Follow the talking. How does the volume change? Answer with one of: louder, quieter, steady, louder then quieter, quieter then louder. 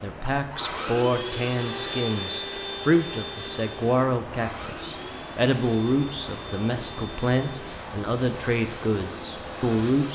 steady.